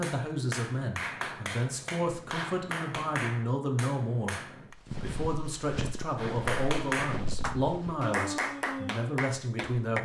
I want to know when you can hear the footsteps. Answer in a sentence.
The footsteps can be heard from 4.7 to 8.1 s.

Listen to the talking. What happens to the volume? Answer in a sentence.
The volume of the talking stays about the same.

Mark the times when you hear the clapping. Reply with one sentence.
You can hear the clapping from 0.0 to 4.8 s and from 6.2 to 10.0 s.